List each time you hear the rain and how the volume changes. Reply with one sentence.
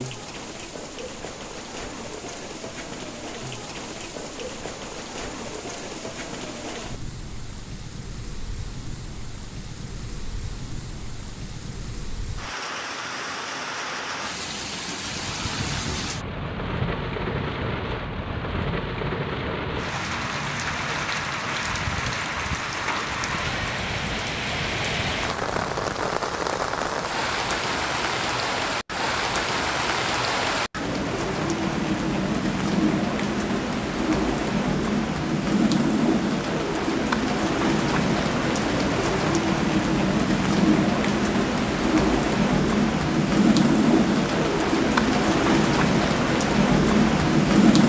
You can hear the rain from 0.0 to 47.8 s, getting louder.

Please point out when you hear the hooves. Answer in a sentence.
The hooves can be heard from 15.0 to 26.1 s.